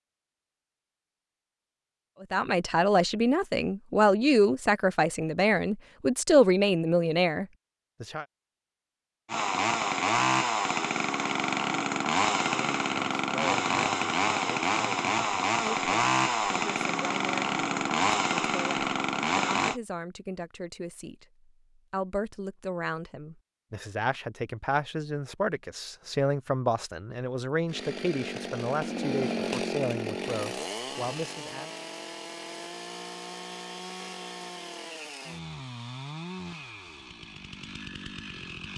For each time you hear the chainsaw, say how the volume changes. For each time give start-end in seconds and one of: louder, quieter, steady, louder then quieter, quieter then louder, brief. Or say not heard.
9.2-19.8 steady
27.6-38.7 quieter.